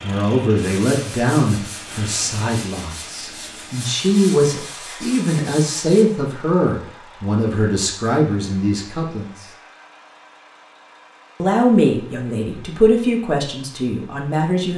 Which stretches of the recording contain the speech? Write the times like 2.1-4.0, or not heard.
0.0-9.4, 11.4-14.7.